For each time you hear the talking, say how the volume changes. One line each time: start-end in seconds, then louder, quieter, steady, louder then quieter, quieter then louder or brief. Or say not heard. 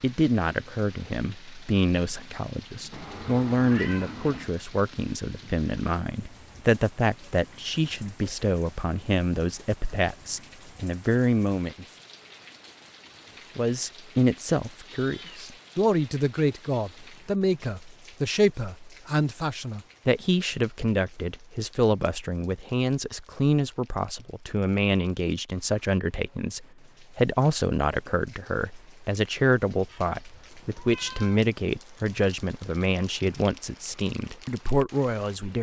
0.0-11.8 steady
13.6-35.5 steady.